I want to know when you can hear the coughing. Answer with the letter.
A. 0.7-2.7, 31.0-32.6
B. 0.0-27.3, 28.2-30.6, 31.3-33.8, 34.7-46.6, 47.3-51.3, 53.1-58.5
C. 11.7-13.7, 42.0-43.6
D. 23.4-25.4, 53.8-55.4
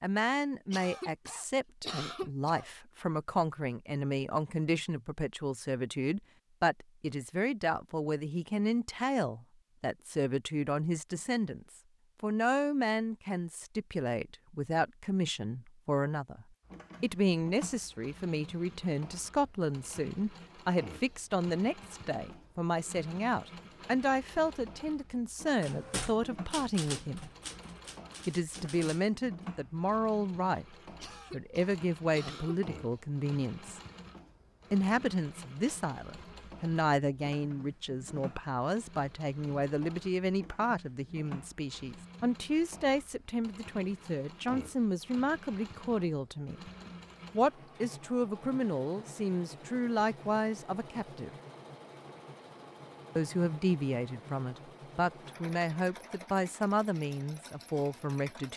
A.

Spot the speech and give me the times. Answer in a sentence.
The speech can be heard from 0.0 to 27.3 s, from 28.2 to 30.6 s, from 31.3 to 33.8 s, from 34.7 to 46.6 s, from 47.3 to 51.3 s and from 53.1 to 58.5 s.